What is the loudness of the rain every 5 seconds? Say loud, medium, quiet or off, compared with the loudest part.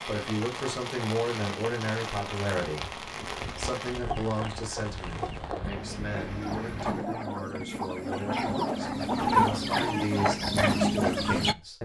loud, loud, off.